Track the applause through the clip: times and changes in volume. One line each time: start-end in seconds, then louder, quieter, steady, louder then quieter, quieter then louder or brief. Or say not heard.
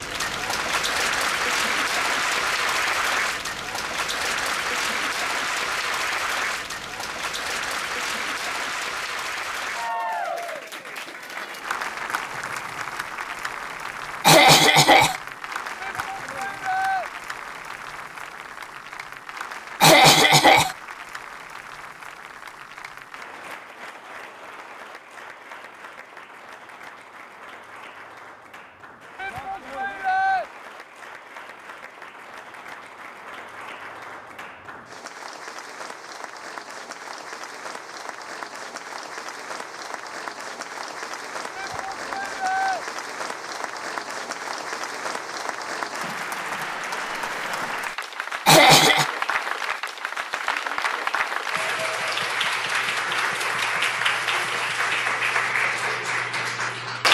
0.0-57.0 quieter then louder.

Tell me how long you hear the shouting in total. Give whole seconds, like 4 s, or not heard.
4 s.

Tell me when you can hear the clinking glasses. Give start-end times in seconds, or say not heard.
not heard.